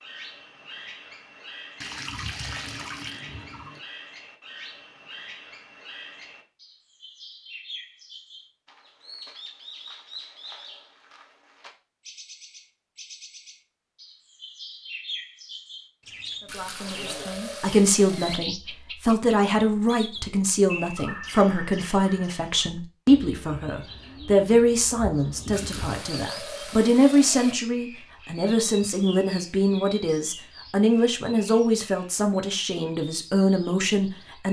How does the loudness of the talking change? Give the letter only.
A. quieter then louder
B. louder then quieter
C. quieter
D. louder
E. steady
E.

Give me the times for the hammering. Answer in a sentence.
You can't hear the hammering here.